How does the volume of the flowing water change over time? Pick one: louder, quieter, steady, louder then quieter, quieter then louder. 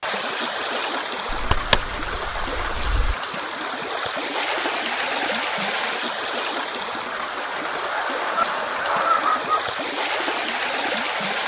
steady.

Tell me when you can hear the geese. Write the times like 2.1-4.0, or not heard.
1.2-3.1, 7.1-9.4.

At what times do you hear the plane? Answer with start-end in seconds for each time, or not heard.
not heard.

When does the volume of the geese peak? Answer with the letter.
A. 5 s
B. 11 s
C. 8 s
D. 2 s
D.